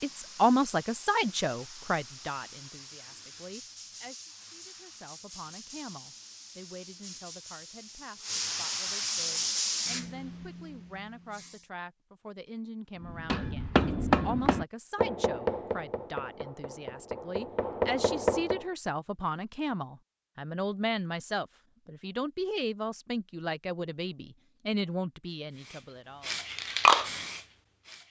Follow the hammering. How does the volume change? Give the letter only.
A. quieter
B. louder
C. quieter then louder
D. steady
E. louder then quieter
C.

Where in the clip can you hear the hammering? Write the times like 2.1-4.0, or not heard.
13.0-18.6.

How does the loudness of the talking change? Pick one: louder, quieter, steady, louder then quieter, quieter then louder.
quieter then louder.